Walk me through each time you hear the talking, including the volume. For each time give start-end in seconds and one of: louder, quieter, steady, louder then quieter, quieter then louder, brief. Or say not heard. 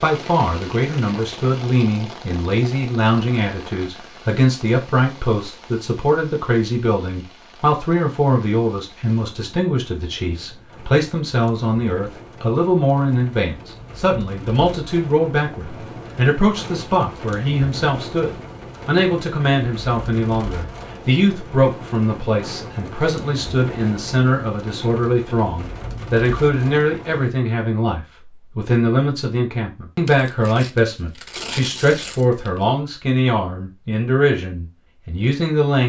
0.0-35.8 steady.